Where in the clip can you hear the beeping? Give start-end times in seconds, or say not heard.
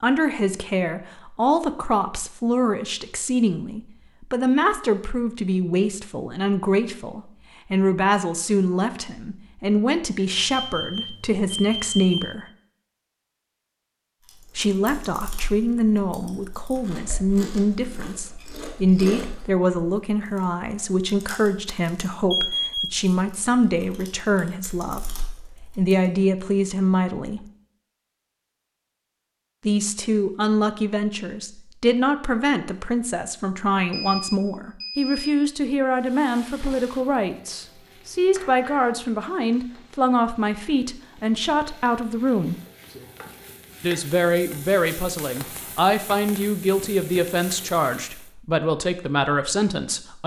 10.3-12.3, 22.3-22.9, 33.9-35.3.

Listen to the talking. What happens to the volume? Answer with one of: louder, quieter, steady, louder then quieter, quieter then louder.
steady.